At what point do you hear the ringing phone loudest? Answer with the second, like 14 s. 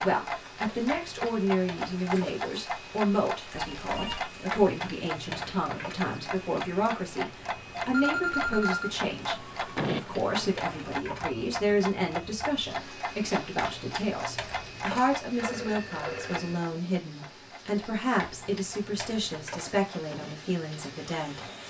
8 s.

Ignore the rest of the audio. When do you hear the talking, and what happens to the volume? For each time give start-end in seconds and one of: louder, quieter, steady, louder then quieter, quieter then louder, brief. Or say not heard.
0.0-21.4 steady.